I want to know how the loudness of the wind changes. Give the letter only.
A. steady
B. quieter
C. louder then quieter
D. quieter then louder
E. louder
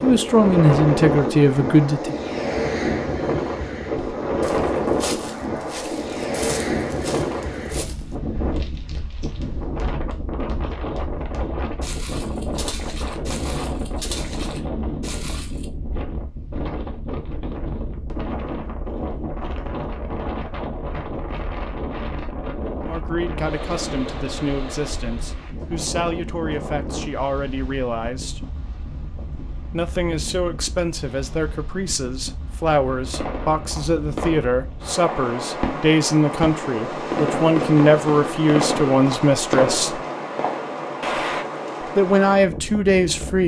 D.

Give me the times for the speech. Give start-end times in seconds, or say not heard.
0.0-2.1, 22.8-28.4, 29.7-40.0, 42.0-43.4.